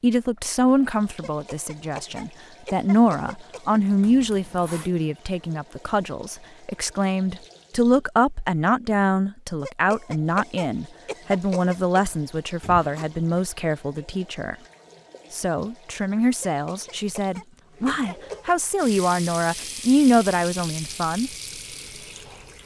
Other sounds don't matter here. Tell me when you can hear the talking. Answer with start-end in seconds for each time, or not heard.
0.0-14.6, 15.3-21.3.